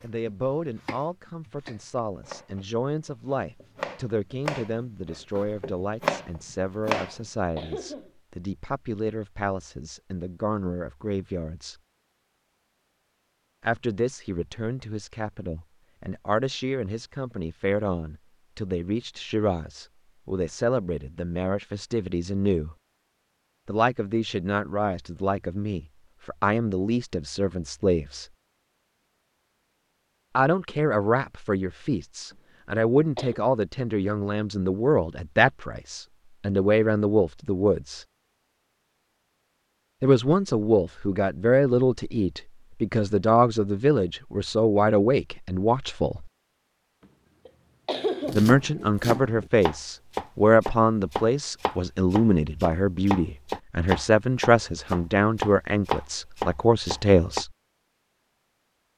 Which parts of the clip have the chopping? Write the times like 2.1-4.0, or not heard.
0.0-7.2, 48.2-57.5.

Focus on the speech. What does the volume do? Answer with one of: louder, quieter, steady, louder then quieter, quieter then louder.
louder.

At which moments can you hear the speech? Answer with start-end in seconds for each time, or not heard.
0.0-11.8, 13.6-22.8, 23.6-28.2, 30.4-38.0, 40.0-46.3, 48.3-57.5.